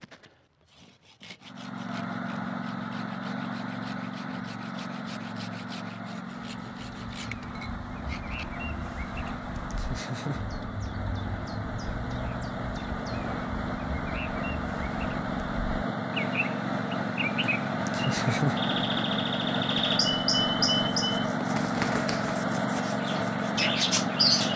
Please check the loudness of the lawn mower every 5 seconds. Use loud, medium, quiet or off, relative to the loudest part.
medium, medium, medium, loud, loud.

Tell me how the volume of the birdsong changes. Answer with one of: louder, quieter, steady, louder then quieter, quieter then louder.
louder.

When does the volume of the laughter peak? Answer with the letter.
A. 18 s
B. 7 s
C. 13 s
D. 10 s
A.